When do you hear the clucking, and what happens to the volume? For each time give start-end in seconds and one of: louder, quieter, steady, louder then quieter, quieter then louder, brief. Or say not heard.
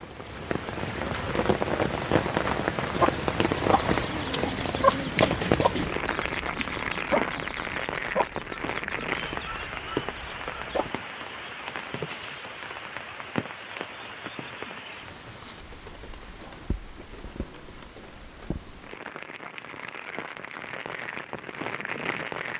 3.0-10.9 louder then quieter.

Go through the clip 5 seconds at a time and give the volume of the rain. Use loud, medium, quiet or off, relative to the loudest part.
loud, loud, medium, quiet, medium.